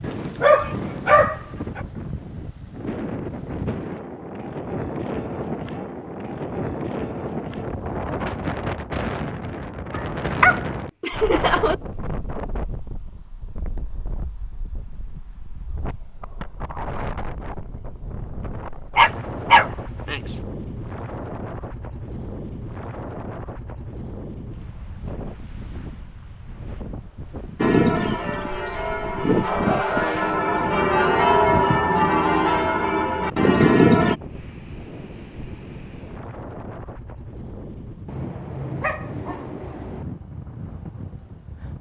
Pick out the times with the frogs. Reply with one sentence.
You can't hear the frogs here.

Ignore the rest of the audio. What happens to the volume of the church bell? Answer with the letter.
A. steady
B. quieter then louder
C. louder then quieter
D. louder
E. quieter
D.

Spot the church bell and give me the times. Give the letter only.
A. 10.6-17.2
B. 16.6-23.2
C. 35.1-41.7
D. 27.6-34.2
D.